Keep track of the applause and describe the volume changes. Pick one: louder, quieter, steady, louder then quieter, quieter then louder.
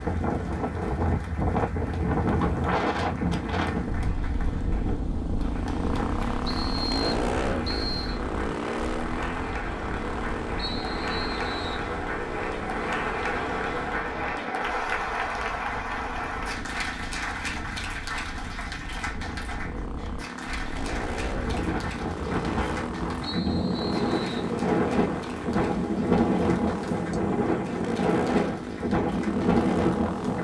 louder then quieter.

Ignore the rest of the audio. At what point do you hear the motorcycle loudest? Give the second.
7 s.